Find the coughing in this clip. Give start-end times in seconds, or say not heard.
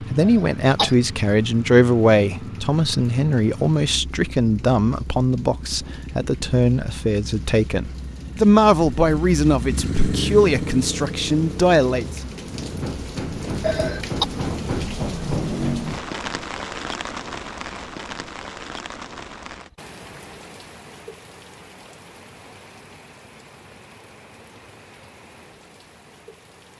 0.2-0.9, 13.6-14.2.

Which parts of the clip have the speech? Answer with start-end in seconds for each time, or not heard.
0.0-12.2.